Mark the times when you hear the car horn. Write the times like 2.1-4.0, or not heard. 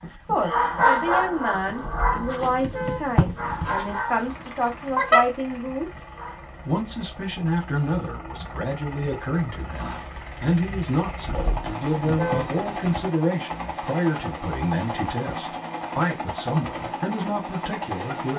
1.8-3.6, 11.2-13.1.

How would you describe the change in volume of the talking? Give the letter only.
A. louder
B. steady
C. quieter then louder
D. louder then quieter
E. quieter
B.